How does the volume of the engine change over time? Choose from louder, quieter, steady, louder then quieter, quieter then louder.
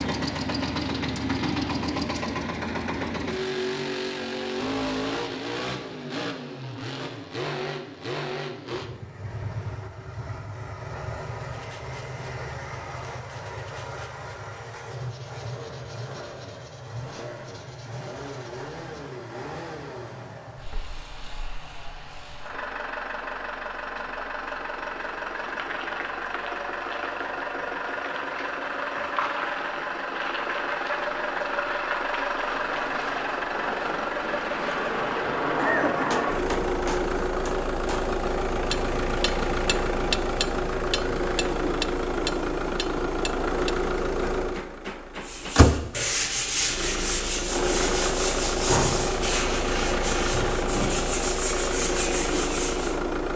quieter then louder.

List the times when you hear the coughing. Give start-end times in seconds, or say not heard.
35.5-36.2.